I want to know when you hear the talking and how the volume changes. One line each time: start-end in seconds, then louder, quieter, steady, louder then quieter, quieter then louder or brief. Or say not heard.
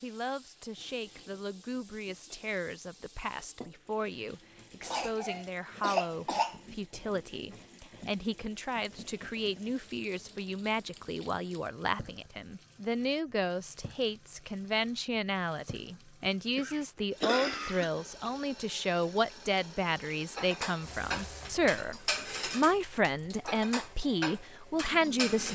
0.0-25.4 louder.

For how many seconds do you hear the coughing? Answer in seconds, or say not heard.
3 s.